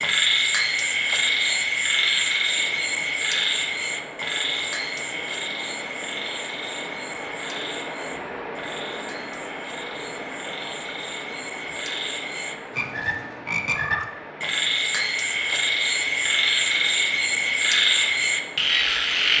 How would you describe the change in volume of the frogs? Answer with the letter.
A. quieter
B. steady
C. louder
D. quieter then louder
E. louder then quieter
D.